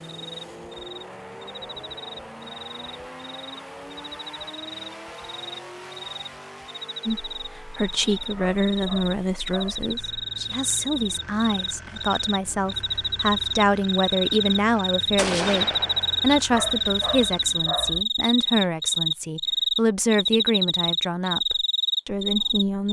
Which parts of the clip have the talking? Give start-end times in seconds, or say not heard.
7.0-22.8.